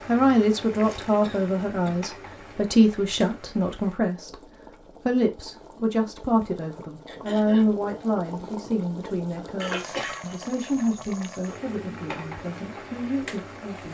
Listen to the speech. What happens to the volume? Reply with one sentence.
The volume of the speech goes down.